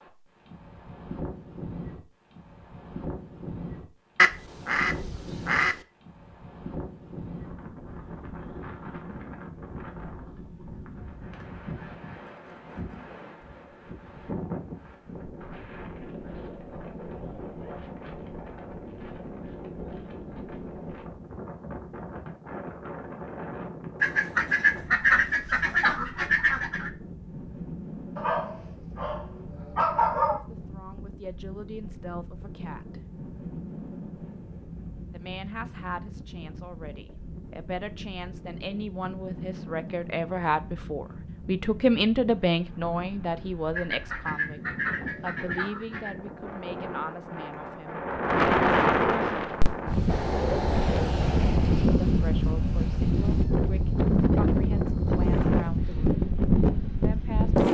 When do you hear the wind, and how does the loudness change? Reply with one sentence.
You can hear the wind from 0.0 to 57.7 s, getting louder.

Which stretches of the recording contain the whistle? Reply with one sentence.
You can't hear the whistle here.